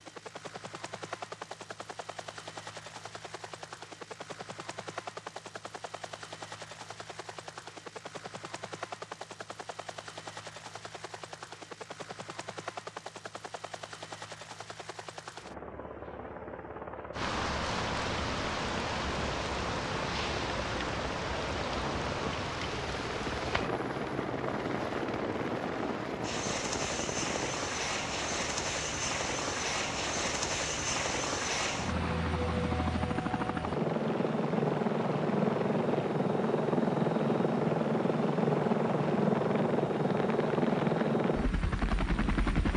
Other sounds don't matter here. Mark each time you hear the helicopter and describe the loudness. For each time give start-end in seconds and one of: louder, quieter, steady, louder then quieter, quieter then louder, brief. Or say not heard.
0.0-42.7 louder.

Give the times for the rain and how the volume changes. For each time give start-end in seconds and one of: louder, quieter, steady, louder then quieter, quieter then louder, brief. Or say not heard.
17.1-42.7 quieter.